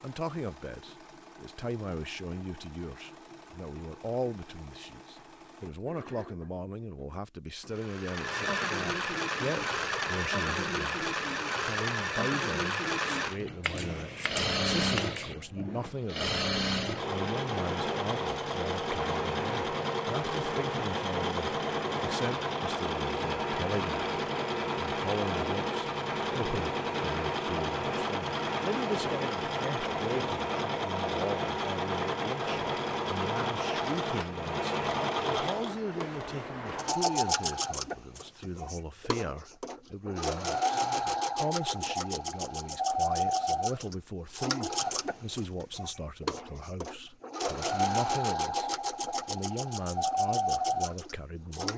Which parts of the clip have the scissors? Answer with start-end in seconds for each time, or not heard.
13.6-15.3.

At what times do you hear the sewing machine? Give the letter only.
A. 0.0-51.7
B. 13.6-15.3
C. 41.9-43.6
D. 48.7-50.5
A.